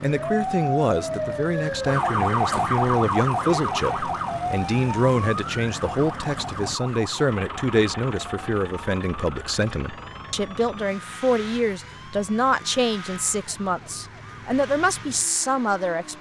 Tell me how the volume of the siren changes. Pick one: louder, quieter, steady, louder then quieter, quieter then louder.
quieter.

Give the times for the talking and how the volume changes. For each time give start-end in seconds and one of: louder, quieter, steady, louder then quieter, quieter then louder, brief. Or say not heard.
0.0-16.1 steady.